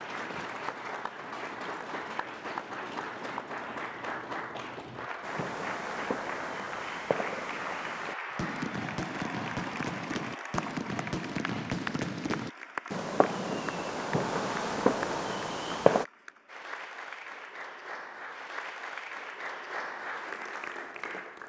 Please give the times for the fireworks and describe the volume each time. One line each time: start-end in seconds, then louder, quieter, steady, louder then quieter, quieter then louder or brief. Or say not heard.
5.2-16.1 louder.